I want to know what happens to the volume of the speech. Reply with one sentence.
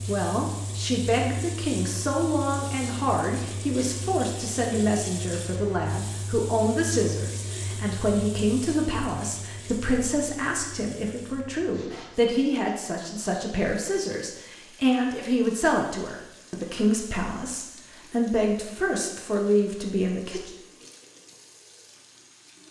The volume of the speech stays about the same.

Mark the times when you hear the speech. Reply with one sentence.
The speech can be heard from 0.1 to 20.5 s.